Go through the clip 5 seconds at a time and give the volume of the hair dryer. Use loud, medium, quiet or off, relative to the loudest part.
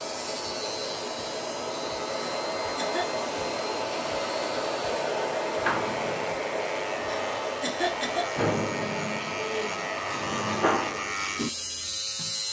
loud, loud, medium.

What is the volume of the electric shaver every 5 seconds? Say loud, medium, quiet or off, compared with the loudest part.
medium, loud, loud.